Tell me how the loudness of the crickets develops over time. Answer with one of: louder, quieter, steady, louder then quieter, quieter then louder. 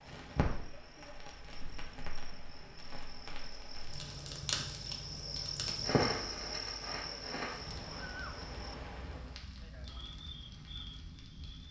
louder then quieter.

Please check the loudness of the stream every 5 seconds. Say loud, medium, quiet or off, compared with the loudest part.
medium, loud, off.